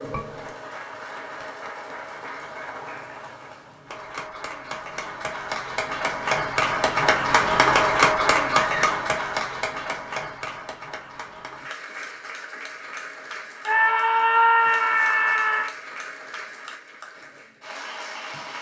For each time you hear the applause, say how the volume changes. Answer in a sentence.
The applause can be heard from 0.0 to 18.5 s, getting louder then quieter.